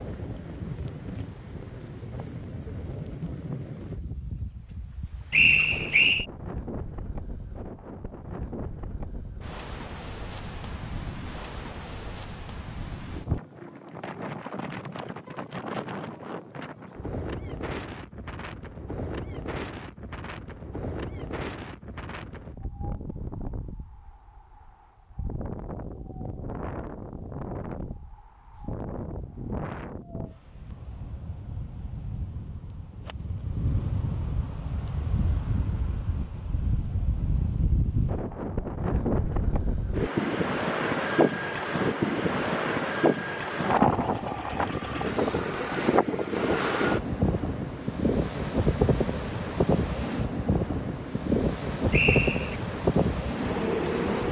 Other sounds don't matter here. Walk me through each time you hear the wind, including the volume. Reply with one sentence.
You can hear the wind from 0.0 to 54.2 s, getting louder.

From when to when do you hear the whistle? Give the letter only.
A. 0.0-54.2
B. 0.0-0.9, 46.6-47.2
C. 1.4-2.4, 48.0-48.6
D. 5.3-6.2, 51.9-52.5
D.